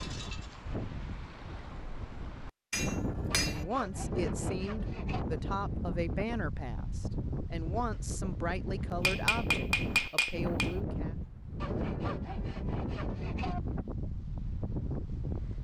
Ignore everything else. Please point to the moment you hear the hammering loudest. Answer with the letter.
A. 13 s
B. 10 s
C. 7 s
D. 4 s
B.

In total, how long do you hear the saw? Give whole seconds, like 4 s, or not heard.
4 s.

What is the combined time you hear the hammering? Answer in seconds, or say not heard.
3 s.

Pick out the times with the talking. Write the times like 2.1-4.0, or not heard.
3.5-11.1.